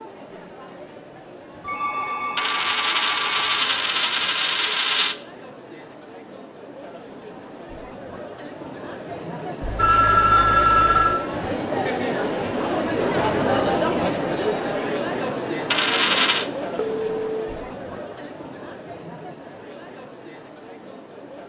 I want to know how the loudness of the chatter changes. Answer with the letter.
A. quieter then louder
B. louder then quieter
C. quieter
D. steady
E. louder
B.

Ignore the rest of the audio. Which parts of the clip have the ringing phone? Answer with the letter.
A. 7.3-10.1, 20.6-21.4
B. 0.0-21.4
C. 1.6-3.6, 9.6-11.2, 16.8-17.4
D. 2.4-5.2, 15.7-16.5
C.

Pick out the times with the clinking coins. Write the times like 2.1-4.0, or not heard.
2.4-5.2, 15.7-16.5.